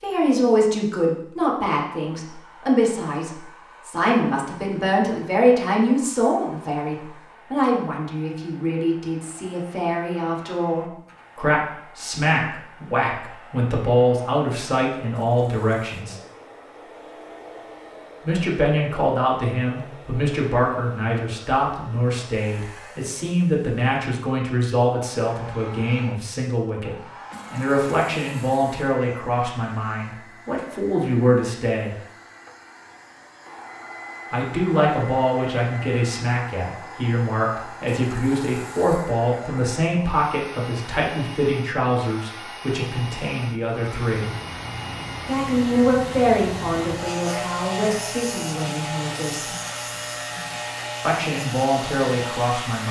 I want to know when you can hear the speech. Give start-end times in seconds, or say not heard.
0.0-16.1, 18.2-31.9, 34.3-44.3, 45.2-49.5, 51.0-52.8.